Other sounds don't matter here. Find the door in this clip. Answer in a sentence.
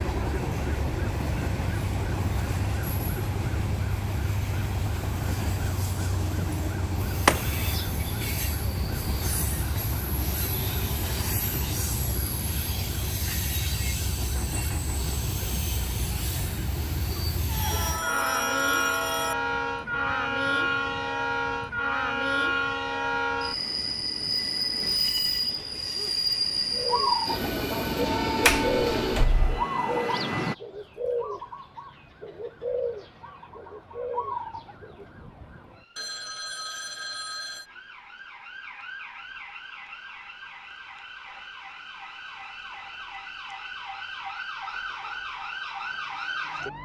The door can be heard from 7.2 to 7.8 s and from 28.4 to 29.6 s.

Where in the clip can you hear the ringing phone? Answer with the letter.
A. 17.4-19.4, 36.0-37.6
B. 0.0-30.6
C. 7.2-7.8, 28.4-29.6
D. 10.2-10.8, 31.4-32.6
A.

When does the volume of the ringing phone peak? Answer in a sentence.
The volume of the ringing phone peaks at 18 seconds.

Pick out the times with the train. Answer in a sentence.
The train can be heard from 0.0 to 30.6 s.